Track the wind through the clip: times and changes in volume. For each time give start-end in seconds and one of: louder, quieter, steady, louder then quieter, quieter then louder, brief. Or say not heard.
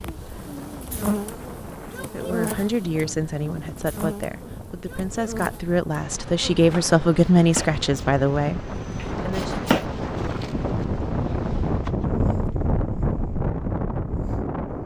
0.0-14.8 louder.